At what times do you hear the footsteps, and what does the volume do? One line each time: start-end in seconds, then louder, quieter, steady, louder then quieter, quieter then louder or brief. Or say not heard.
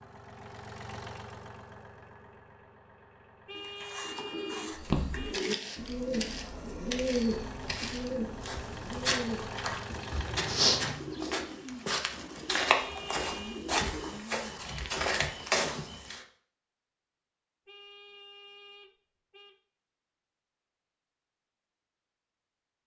4.8-16.2 louder.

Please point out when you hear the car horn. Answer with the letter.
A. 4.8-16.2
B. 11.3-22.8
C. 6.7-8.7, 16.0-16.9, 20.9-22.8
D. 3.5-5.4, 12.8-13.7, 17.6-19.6
D.